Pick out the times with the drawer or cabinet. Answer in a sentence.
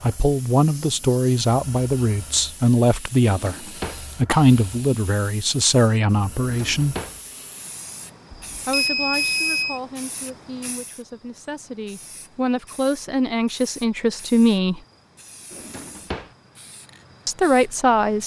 The drawer or cabinet can be heard from 3.3 to 4.0 s, from 6.4 to 7.2 s and from 15.5 to 16.3 s.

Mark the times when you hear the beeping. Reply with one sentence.
You can hear the beeping from 8.5 to 9.8 s.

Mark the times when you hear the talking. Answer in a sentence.
You can hear the talking from 0.0 to 3.5 s, from 4.2 to 7.0 s, from 8.7 to 14.8 s and from 17.2 to 18.2 s.